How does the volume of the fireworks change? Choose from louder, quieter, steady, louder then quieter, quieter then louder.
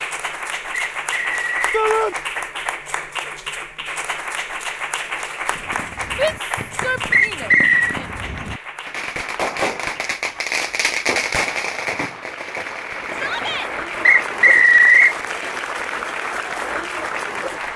louder then quieter.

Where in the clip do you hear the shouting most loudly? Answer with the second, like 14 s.
2 s.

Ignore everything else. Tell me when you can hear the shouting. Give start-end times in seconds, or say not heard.
1.7-2.1, 6.2-8.1, 13.1-13.7.